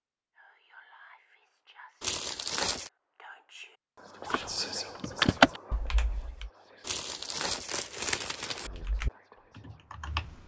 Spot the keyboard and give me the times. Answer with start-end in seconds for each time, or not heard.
4.3-6.5, 8.7-10.4.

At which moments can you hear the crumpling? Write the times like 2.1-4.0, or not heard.
2.0-2.9, 6.8-8.7.